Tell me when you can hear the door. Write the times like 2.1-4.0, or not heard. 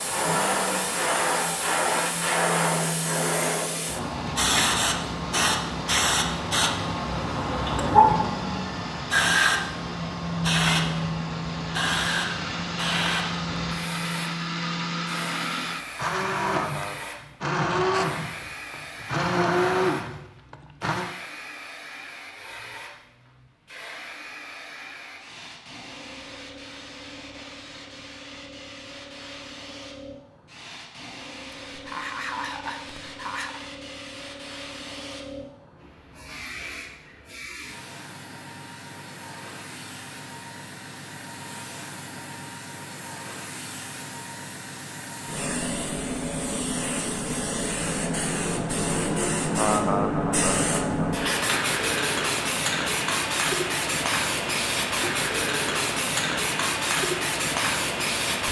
not heard.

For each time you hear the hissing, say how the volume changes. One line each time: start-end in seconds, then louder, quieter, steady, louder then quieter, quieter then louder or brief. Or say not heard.
0.0-58.4 quieter then louder.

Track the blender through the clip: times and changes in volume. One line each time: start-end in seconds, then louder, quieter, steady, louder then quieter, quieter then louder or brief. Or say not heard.
0.1-21.1 louder.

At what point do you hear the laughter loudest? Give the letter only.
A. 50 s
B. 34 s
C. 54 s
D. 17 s
A.